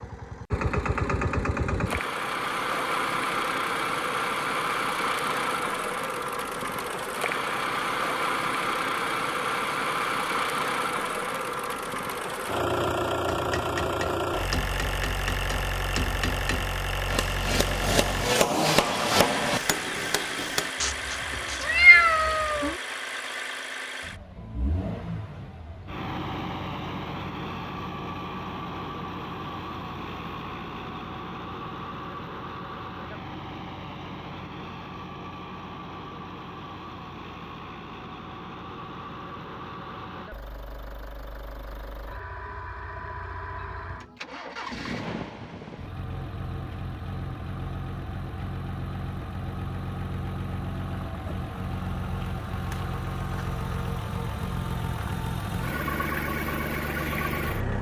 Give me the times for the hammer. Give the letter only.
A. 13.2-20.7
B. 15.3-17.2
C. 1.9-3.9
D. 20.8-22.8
A.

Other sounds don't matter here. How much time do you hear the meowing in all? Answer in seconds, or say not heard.
2 s.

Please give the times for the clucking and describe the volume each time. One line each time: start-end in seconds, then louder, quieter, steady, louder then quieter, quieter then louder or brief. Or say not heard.
not heard.